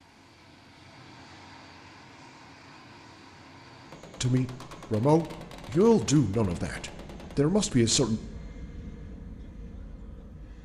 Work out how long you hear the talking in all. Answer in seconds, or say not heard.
4 s.